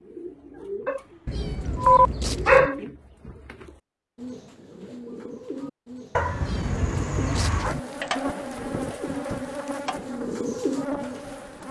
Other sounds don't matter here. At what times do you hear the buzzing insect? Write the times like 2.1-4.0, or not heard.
7.7-11.6.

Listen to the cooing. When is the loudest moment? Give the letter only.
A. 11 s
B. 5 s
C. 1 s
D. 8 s
A.